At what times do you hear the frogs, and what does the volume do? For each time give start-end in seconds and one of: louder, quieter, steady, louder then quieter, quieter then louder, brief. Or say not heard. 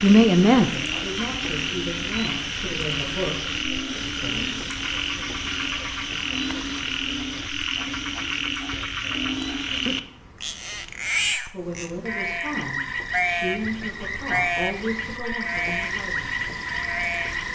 0.0-17.5 steady.